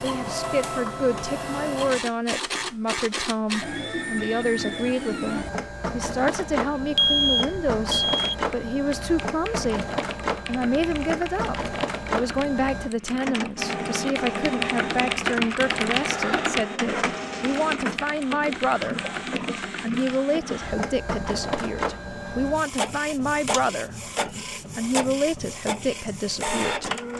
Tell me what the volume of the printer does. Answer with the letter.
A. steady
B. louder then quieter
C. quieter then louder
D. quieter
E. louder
A.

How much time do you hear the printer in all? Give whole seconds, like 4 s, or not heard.
27 s.